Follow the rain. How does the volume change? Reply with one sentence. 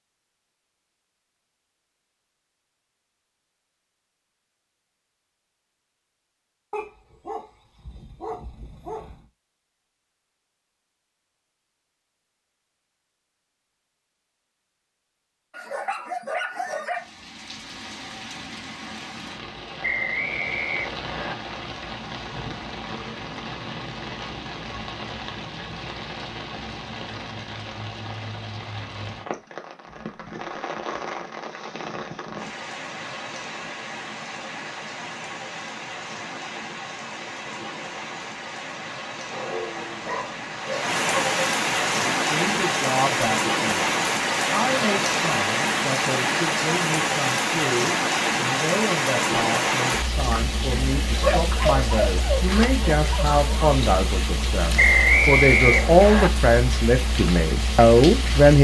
The loudness of the rain goes up, then down.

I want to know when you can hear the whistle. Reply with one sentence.
The whistle can be heard from 19.8 to 21.4 s and from 54.8 to 56.3 s.